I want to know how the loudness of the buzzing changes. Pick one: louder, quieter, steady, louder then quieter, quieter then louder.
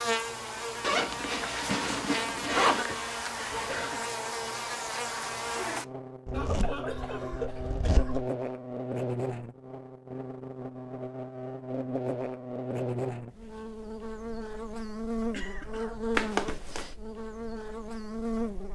steady.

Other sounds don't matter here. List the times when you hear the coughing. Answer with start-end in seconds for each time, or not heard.
2.5-4.2, 6.3-8.2, 15.3-16.0.